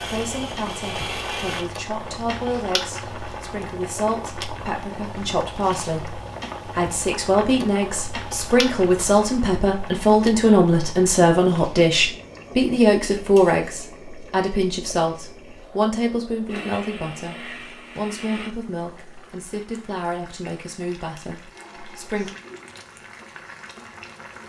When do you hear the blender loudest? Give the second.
1 s.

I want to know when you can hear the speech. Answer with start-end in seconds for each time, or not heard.
0.0-22.4.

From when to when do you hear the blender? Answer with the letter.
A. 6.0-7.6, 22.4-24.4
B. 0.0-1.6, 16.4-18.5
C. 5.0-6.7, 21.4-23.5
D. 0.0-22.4
B.